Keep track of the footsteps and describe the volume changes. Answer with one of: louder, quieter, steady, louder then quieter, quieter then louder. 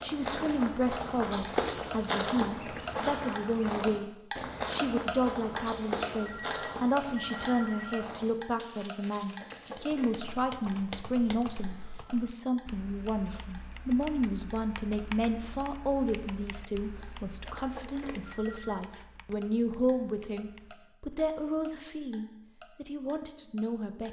quieter.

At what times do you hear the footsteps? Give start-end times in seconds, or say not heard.
0.0-9.8.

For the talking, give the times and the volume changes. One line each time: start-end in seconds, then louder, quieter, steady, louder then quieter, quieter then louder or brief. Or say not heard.
0.0-24.0 steady.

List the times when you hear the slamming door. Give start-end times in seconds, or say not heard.
not heard.